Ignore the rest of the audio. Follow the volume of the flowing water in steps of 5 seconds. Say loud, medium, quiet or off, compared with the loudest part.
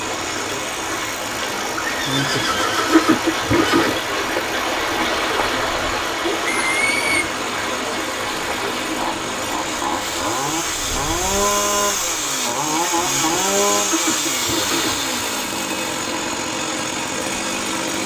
loud, loud, medium, medium.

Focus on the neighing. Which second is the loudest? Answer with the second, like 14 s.
3 s.